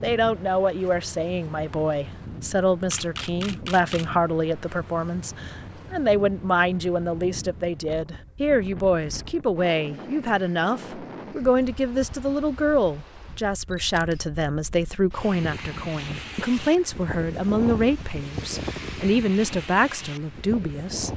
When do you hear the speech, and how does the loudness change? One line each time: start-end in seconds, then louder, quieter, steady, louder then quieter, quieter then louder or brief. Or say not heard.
0.0-21.1 steady.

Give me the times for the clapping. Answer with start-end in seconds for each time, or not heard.
not heard.